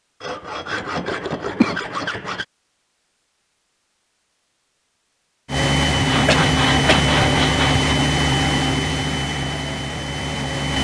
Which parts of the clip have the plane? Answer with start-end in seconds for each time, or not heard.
5.5-10.7.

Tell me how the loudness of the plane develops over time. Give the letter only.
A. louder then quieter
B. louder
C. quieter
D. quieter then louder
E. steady
C.